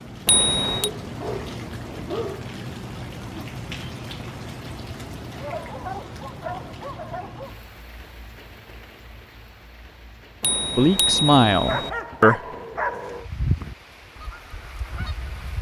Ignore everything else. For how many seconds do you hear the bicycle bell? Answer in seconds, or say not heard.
2 s.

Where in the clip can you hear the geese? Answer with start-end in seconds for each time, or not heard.
13.2-15.5.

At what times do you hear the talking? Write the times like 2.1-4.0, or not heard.
10.8-12.4.